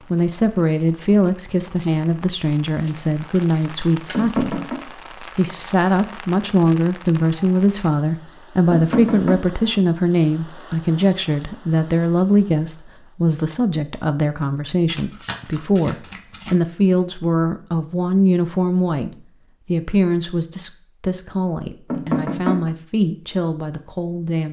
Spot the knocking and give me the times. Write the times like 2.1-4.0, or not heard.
4.1-4.8, 8.7-9.6, 21.9-22.7.